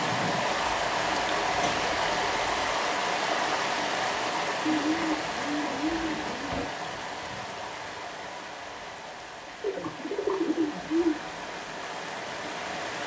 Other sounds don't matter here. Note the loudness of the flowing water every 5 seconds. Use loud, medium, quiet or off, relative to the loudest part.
loud, medium, medium.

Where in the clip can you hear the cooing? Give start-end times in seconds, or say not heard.
0.5-2.8, 4.7-6.7, 9.6-11.2.